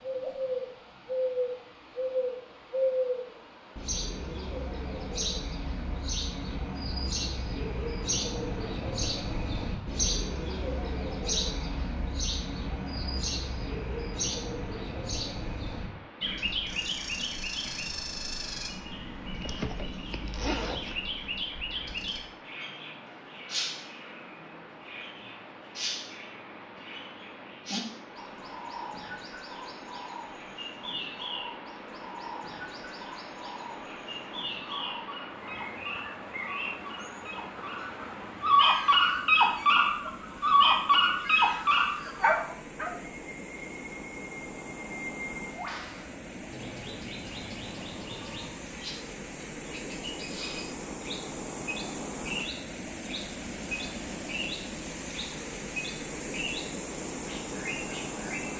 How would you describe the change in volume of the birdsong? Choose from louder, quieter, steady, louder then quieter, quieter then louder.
quieter.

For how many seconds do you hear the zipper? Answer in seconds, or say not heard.
2 s.